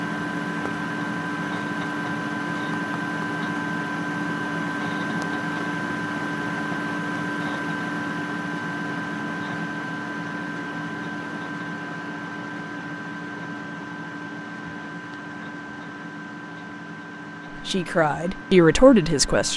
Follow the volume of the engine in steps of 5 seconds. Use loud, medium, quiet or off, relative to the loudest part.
loud, loud, medium, medium.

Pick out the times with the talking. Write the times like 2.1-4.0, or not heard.
17.6-19.5.